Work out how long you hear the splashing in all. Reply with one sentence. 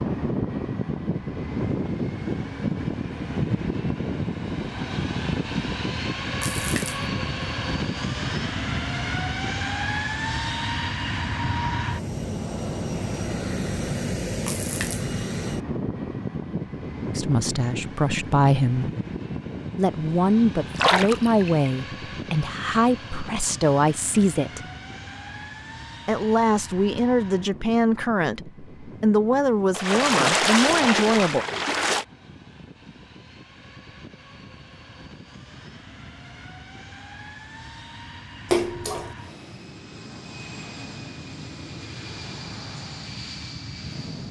The splashing can be heard for 5 seconds in total.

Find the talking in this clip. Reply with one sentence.
The talking can be heard from 17.1 to 18.9 s, from 19.8 to 24.6 s and from 26.1 to 31.4 s.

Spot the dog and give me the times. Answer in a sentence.
You can't hear the dog here.